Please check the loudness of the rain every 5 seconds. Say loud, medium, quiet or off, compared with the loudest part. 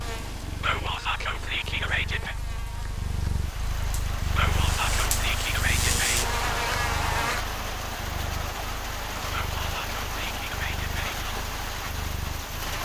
medium, loud, loud.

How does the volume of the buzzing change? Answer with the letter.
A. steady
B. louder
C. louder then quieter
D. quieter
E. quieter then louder
B.